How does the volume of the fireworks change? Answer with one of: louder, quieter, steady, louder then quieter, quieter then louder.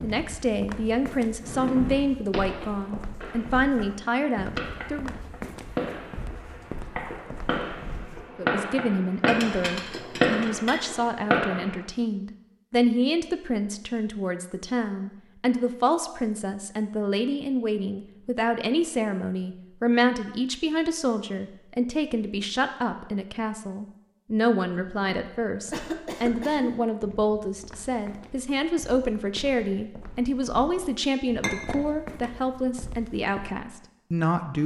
louder.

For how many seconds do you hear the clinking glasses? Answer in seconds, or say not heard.
2 s.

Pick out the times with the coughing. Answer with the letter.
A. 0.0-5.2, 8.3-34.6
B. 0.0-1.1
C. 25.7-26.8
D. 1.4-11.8
C.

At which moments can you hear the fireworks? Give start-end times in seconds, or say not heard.
1.4-11.8.